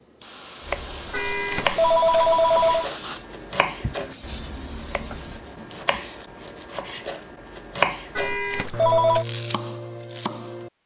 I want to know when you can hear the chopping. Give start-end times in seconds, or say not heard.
0.6-10.7.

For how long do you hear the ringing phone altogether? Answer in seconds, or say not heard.
3 s.